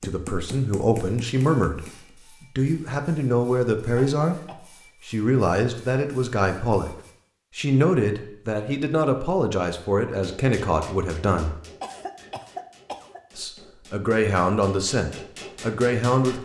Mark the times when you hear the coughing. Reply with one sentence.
You can hear the coughing from 4.0 to 4.6 s and from 11.8 to 13.2 s.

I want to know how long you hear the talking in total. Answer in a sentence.
You can hear the talking for 13 seconds altogether.